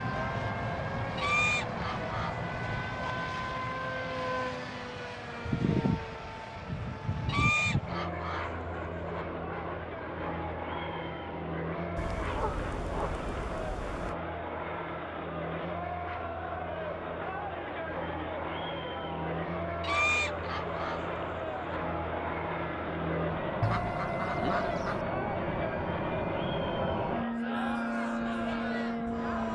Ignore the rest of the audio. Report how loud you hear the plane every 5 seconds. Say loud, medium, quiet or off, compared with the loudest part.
loud, loud, medium, medium, loud, loud.